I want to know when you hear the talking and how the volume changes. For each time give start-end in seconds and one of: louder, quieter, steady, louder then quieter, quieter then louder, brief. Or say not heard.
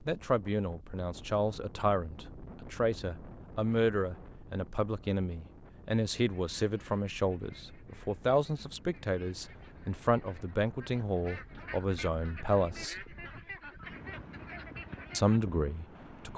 0.1-13.1 steady
15.1-16.3 brief.